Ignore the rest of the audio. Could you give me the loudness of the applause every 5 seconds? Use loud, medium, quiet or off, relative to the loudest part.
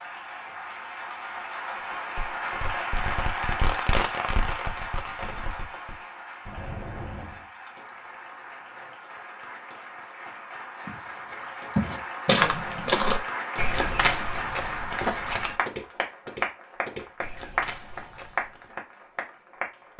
loud, medium, loud, loud.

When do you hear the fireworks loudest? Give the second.
4 s.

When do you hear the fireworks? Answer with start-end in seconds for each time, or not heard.
1.8-7.5.